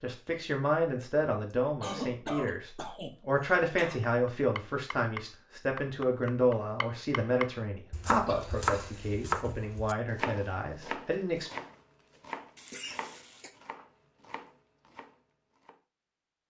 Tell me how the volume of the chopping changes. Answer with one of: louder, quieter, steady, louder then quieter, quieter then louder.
louder then quieter.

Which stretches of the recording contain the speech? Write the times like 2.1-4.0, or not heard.
0.0-11.5.